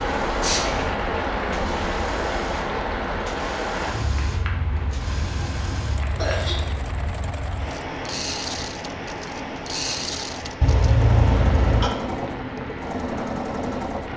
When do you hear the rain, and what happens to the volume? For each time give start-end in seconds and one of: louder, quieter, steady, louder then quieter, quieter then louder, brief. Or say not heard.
0.0-14.1 quieter.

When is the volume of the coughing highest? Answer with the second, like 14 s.
11 s.